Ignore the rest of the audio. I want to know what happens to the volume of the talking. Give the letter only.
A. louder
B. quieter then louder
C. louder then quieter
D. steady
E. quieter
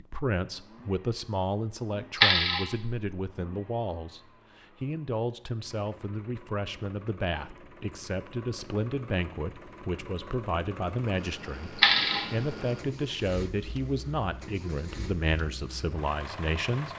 D.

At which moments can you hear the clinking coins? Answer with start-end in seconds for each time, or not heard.
2.1-3.1, 11.8-12.2.